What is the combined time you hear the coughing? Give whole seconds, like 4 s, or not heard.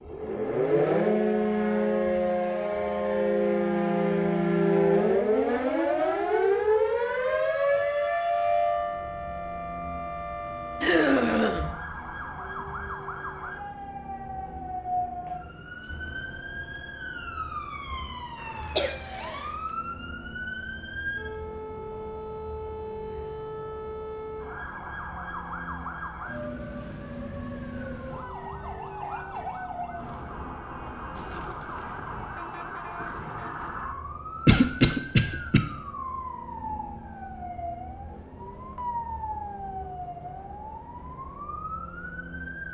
3 s.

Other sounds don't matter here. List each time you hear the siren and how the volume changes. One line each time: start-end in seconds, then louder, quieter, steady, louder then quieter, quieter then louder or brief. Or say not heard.
0.0-42.6 quieter.